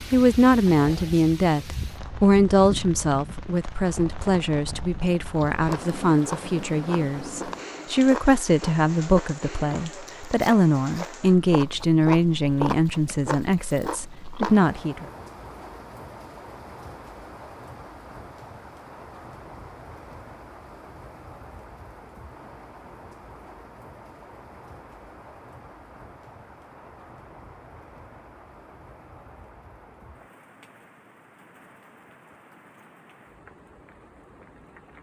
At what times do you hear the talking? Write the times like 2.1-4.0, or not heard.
0.1-15.1.